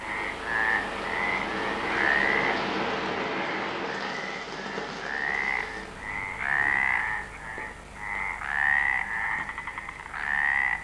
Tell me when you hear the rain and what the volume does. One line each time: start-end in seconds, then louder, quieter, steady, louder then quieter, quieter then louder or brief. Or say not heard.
0.0-10.8 quieter.